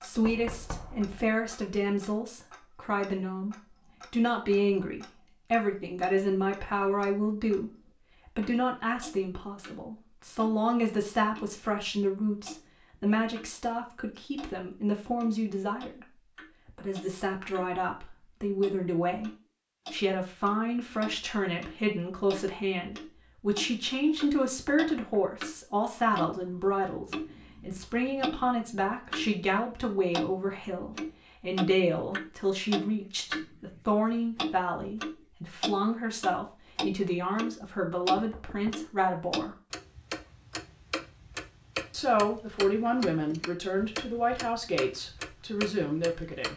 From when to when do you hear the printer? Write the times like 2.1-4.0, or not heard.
not heard.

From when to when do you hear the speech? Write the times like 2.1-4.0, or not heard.
0.0-39.5, 41.9-46.5.